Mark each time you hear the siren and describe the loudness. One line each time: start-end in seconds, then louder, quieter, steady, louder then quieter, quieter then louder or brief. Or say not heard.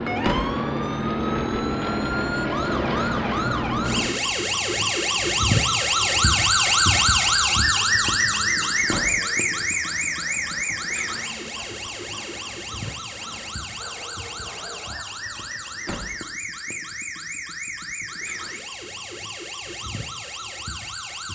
0.0-21.3 louder then quieter.